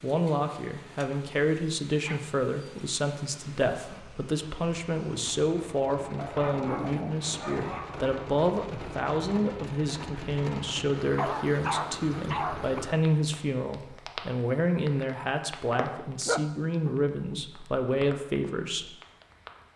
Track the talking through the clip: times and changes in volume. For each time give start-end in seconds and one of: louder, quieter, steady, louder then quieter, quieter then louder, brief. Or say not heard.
0.0-18.9 steady.